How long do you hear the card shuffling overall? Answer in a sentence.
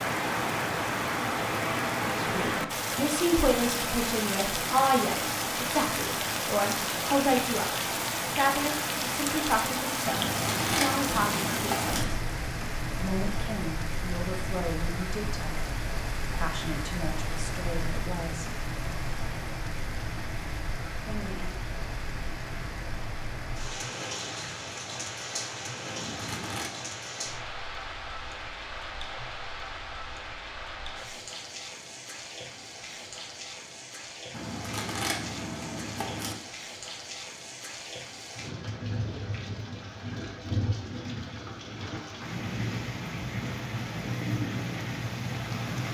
The card shuffling can be heard for 5 seconds in total.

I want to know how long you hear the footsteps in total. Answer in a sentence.
The footsteps can't be heard in this clip.